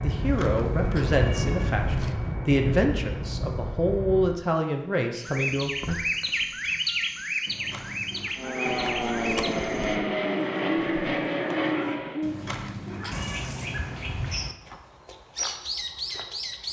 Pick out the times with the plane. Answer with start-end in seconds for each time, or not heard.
0.0-4.5, 8.3-12.2.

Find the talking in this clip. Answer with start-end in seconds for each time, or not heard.
0.0-5.7.